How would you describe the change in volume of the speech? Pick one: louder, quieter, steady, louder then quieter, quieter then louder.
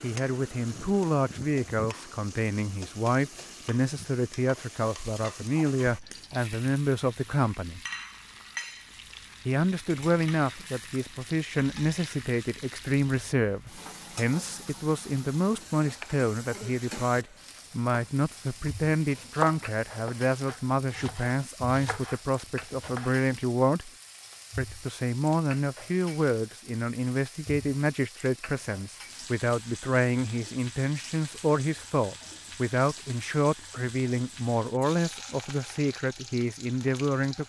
steady.